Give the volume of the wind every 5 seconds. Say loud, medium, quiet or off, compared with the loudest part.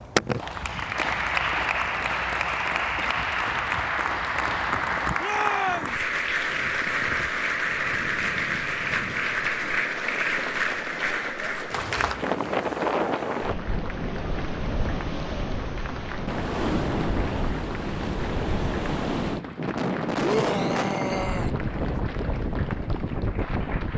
quiet, quiet, loud, loud, loud.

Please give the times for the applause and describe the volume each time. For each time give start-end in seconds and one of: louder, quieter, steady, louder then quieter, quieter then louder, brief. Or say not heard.
0.0-23.9 quieter.